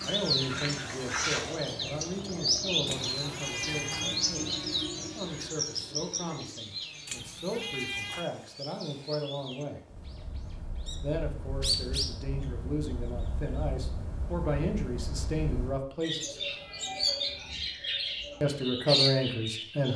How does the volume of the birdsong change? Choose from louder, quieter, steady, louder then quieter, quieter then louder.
quieter then louder.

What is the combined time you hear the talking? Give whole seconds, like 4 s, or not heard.
17 s.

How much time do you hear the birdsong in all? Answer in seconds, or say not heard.
20 s.